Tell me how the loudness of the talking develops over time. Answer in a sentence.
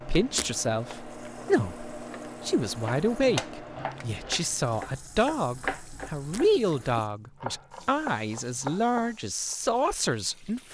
The loudness of the talking stays about the same.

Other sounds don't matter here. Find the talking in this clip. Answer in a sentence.
You can hear the talking from 0.0 to 10.6 s.